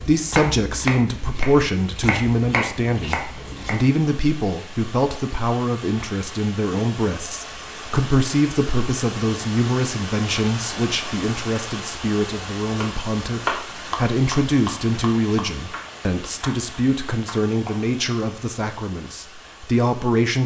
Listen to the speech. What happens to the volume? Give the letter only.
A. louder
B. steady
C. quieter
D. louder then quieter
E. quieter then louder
B.